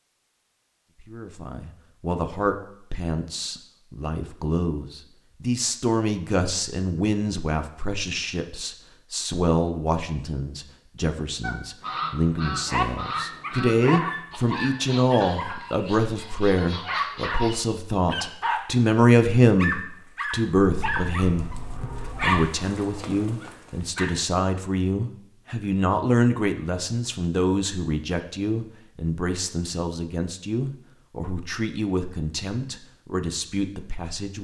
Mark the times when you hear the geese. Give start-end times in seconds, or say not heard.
11.4-17.6.